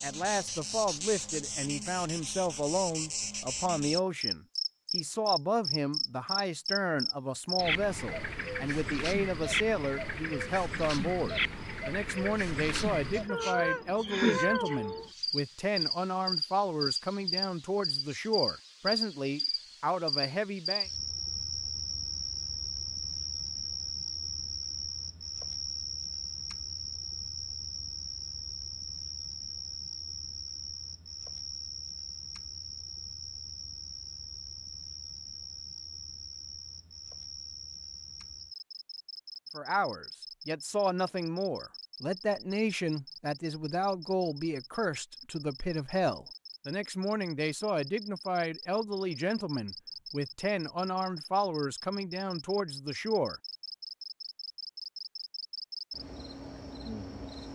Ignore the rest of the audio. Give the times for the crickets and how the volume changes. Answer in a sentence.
You can hear the crickets from 0.0 to 57.5 s, getting quieter.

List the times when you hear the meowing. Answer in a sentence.
You can hear the meowing from 13.2 to 15.1 s.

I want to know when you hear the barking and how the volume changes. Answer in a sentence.
The barking can't be heard in this clip.